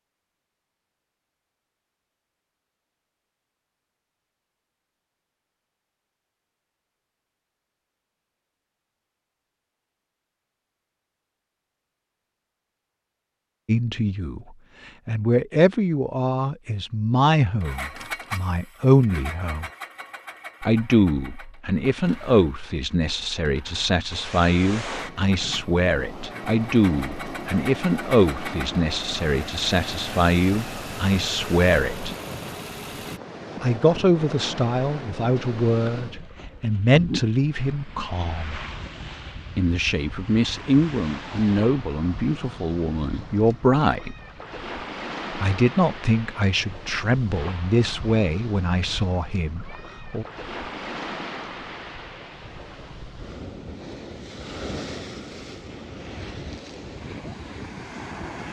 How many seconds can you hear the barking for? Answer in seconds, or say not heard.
not heard.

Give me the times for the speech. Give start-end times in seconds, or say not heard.
13.7-14.4, 15.1-19.7, 20.6-32.1, 33.6-38.6, 39.5-44.1, 45.3-50.2.